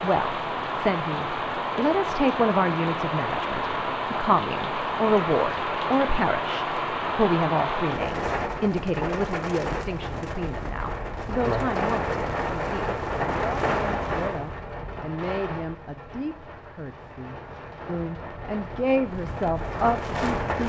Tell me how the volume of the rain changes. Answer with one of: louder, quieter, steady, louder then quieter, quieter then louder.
quieter.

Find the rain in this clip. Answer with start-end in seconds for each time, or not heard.
0.0-20.6.